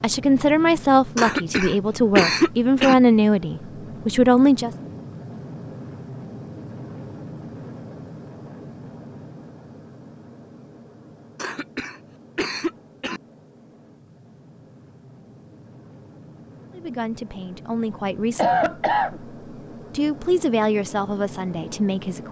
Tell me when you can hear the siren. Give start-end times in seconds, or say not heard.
not heard.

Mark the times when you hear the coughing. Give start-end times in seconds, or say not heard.
1.1-3.0, 11.3-13.2, 18.4-19.2.